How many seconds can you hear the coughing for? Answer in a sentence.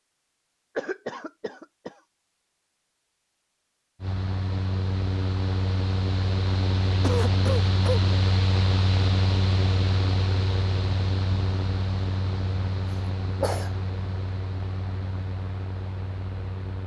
The coughing can be heard for 3 seconds in total.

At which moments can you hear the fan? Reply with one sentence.
You can hear the fan from 4.0 to 16.8 s.